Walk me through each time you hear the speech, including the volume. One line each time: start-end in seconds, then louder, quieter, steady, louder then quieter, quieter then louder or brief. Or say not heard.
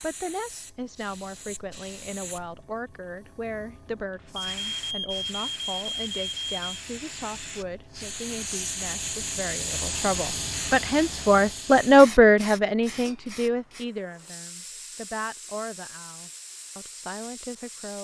0.0-18.0 louder then quieter.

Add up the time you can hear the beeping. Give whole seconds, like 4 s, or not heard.
4 s.